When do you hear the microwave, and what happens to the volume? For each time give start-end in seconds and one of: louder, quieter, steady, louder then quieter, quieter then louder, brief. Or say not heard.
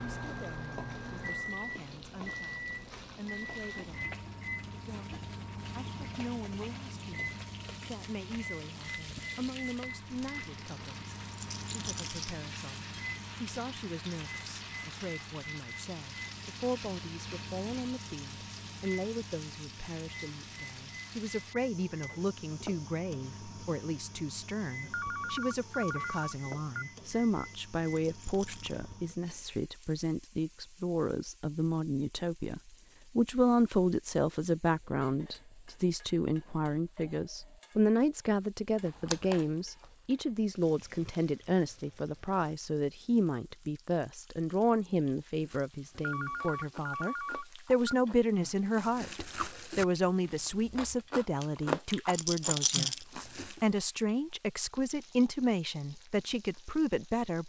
0.0-29.2 quieter.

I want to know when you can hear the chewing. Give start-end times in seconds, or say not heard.
38.7-40.2, 45.4-53.6.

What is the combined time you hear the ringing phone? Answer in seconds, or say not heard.
4 s.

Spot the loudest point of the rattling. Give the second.
53 s.